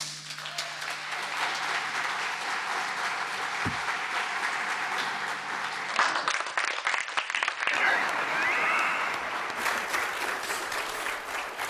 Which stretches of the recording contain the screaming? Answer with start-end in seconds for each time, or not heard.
8.3-9.2.